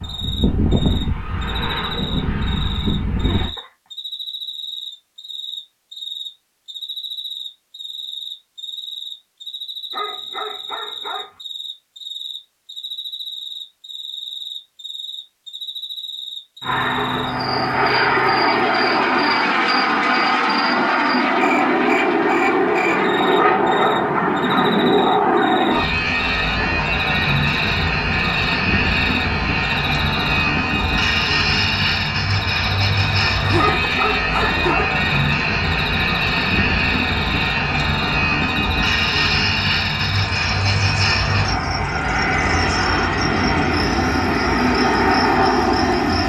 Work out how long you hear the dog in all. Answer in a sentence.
The dog can be heard for 4 seconds in total.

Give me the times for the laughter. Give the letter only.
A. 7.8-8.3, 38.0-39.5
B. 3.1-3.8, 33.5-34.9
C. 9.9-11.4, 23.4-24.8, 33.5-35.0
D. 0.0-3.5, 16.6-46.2
B.